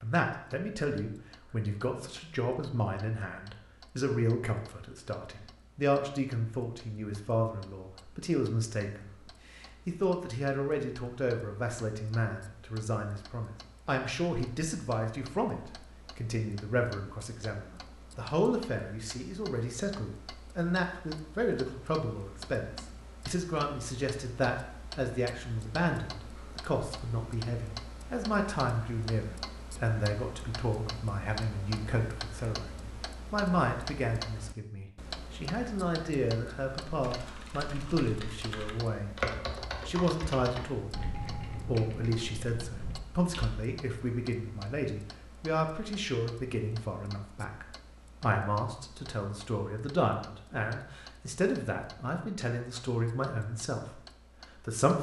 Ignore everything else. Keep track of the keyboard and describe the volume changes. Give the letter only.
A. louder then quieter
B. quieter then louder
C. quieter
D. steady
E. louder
A.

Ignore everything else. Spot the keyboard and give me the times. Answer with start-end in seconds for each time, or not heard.
37.0-43.5.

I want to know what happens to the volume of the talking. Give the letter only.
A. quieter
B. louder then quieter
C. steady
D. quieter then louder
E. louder
C.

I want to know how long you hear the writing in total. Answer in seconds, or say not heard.
not heard.